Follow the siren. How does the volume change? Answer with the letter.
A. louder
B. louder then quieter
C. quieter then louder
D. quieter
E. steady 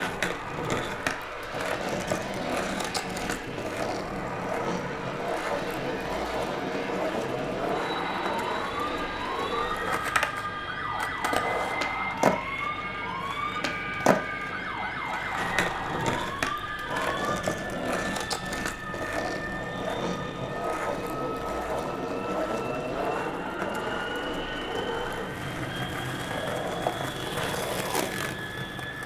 E.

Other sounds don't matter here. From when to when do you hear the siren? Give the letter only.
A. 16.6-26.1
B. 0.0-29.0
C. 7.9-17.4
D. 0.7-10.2
C.